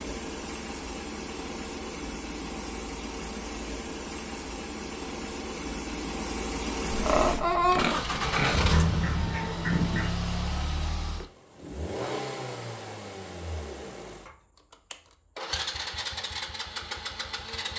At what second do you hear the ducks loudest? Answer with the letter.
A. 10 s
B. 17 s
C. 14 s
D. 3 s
A.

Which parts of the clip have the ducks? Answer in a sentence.
You can hear the ducks from 8.1 to 10.1 s.